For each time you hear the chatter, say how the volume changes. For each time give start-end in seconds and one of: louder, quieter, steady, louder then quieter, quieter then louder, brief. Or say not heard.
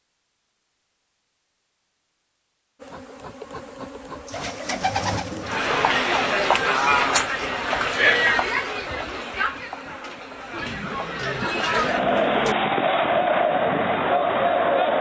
5.4-14.9 quieter then louder.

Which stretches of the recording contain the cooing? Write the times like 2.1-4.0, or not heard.
4.2-5.8, 10.5-12.6.